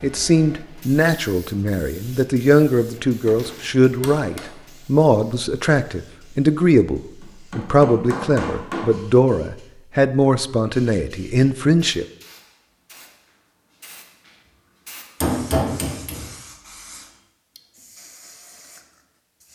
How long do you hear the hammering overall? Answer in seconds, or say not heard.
3 s.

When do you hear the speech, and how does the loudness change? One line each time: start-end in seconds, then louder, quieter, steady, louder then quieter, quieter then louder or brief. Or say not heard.
0.0-12.1 steady.